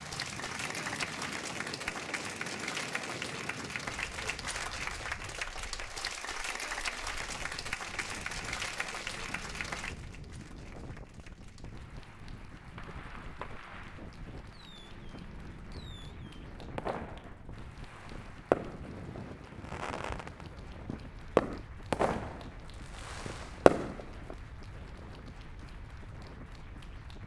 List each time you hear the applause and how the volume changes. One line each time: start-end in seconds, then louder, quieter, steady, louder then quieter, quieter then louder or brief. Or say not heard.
0.0-27.2 quieter.